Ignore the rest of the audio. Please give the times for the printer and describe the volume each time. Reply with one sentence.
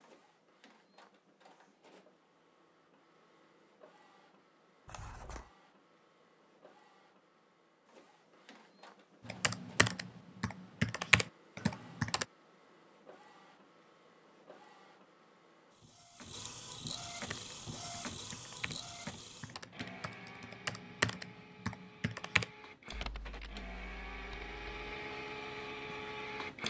You can hear the printer from 0.0 to 26.6 s, getting louder.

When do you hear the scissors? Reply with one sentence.
You can hear the scissors from 4.8 to 5.5 s.